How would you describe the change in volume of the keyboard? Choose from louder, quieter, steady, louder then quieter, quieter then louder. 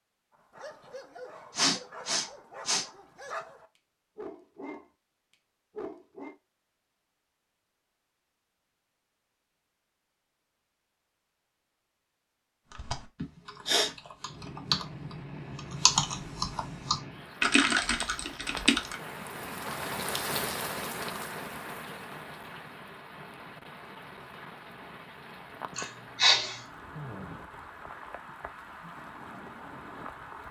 louder.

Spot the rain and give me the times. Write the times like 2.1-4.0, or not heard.
14.2-30.4.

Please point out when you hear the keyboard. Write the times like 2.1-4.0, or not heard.
12.7-18.9.